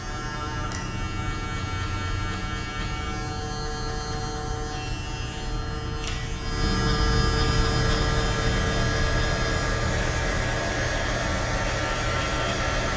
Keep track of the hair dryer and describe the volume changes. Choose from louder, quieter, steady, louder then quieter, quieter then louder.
steady.